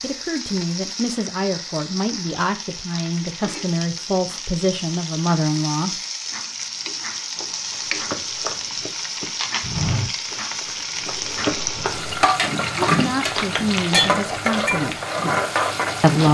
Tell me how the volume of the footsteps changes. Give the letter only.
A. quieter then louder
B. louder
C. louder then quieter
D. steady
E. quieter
C.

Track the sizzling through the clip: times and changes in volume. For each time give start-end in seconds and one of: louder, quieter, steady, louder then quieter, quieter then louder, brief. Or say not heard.
0.0-16.3 louder.